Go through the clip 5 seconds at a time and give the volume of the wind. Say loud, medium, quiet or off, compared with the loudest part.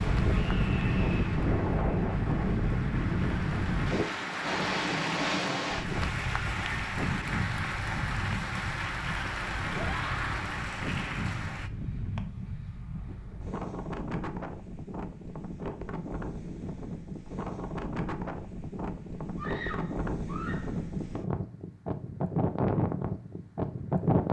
loud, medium, medium, medium, loud.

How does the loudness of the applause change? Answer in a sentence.
The loudness of the applause goes up.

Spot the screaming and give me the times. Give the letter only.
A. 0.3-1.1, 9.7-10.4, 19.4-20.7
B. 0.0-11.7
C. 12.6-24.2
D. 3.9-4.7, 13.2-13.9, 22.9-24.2
A.